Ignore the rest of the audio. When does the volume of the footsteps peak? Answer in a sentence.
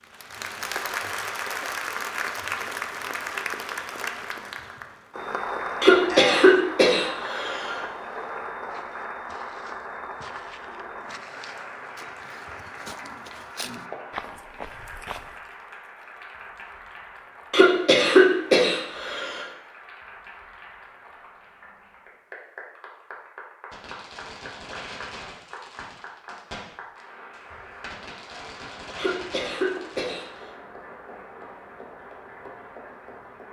The volume of the footsteps peaks at 14 seconds.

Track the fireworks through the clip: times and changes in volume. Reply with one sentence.
You can hear the fireworks from 23.7 to 30.4 s, getting quieter then louder.